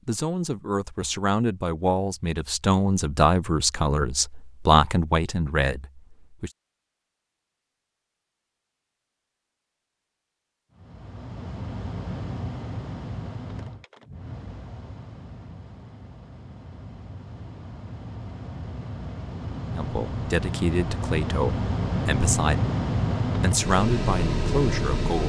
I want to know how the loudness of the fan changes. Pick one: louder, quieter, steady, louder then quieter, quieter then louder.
quieter then louder.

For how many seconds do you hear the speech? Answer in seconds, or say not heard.
12 s.